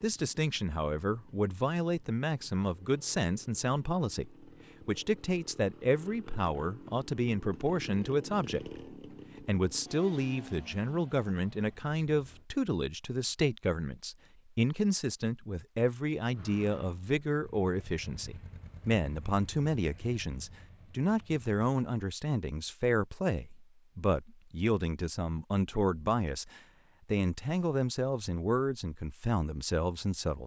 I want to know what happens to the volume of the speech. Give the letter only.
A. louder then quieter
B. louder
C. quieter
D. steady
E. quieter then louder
D.